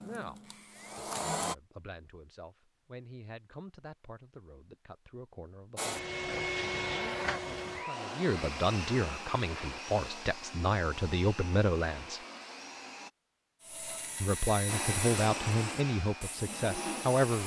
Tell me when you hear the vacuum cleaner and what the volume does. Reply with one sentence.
You can hear the vacuum cleaner briefly from 0.0 to 1.6 s; from 5.8 to 13.1 s, getting quieter; and briefly from 14.7 to 17.4 s.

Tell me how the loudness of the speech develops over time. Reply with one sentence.
The volume of the speech goes up.